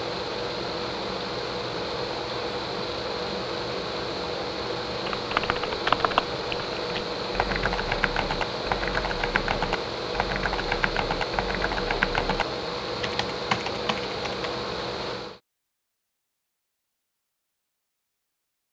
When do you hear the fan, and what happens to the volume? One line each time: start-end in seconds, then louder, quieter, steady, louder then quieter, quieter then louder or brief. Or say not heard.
0.0-15.4 steady.